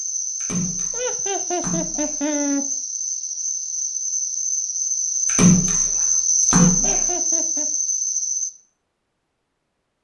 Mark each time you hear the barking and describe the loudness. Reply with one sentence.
You can't hear the barking here.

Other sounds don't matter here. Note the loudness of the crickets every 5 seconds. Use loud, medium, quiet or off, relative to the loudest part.
medium, loud.